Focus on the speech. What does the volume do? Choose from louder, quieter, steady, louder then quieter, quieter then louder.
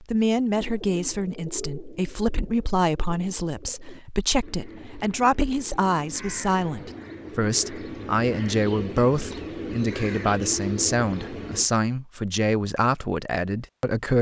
steady.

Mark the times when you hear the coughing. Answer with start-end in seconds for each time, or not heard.
not heard.